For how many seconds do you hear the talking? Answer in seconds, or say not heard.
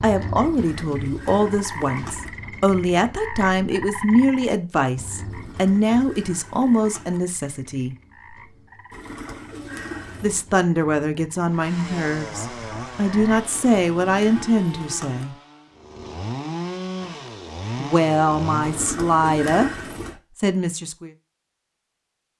16 s.